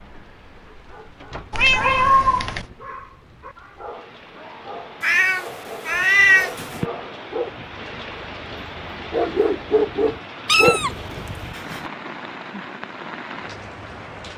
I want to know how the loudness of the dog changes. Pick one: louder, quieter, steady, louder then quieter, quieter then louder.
louder.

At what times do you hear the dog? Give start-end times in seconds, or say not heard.
2.6-11.4.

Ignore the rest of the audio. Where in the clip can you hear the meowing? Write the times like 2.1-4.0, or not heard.
1.5-2.6, 5.0-6.8, 10.4-11.8.